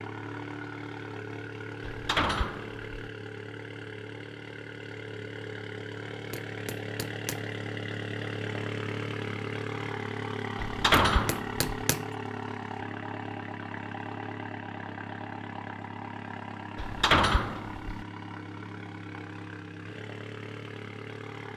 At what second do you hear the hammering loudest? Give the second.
12 s.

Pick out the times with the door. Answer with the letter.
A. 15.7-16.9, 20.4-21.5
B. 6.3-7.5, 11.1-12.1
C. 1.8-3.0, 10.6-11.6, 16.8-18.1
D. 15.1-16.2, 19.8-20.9
C.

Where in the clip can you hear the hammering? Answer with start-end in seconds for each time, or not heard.
6.3-7.5, 11.1-12.1.